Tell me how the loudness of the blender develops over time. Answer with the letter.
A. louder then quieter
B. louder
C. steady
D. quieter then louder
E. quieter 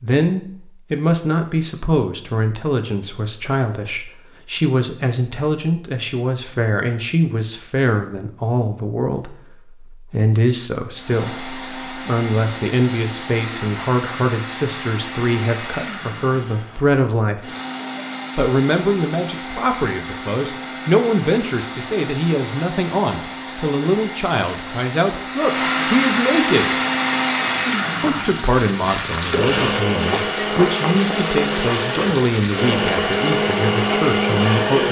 B.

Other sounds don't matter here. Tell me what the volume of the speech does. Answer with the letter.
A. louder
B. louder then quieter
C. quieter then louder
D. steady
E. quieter
D.